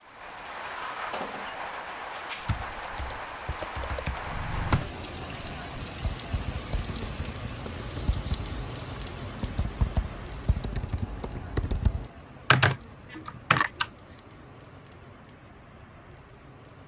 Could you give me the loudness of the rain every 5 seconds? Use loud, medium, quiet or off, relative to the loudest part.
loud, loud, medium, quiet.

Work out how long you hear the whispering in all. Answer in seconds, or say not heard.
not heard.